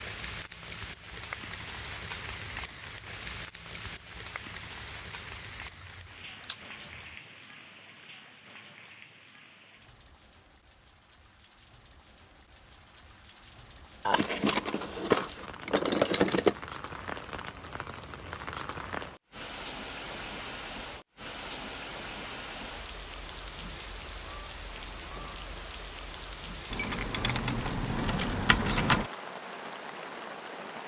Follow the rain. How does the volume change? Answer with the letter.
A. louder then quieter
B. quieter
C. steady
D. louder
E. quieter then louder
E.